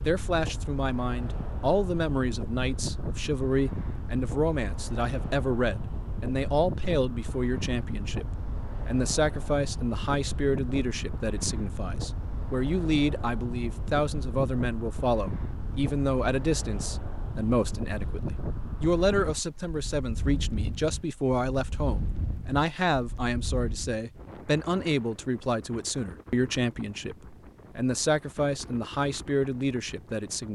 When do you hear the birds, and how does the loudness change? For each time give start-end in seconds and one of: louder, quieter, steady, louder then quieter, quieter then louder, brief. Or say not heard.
not heard.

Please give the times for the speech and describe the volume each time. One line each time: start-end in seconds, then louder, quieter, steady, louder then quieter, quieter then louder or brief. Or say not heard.
0.0-30.5 steady.